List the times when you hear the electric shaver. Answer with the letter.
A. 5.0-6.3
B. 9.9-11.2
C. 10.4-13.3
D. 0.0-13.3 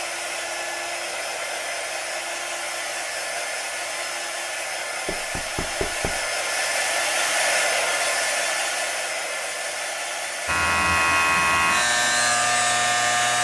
C.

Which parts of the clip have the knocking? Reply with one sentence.
You can hear the knocking from 5.0 to 6.3 s.